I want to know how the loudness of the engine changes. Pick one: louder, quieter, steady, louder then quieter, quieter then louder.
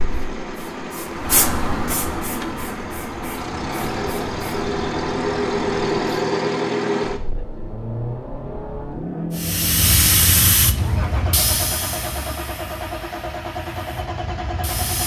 louder then quieter.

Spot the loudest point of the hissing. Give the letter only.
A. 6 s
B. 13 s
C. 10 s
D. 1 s
C.